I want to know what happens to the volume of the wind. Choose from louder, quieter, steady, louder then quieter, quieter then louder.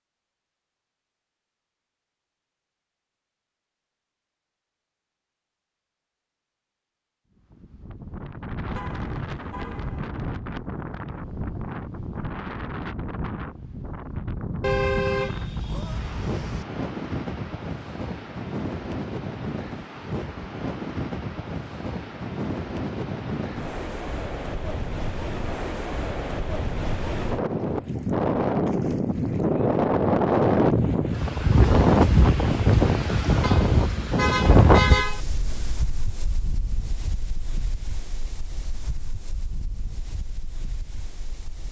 louder then quieter.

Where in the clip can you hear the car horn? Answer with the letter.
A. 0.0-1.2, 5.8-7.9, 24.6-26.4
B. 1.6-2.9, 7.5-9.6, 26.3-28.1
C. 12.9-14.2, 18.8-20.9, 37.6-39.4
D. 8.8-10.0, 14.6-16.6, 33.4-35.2
D.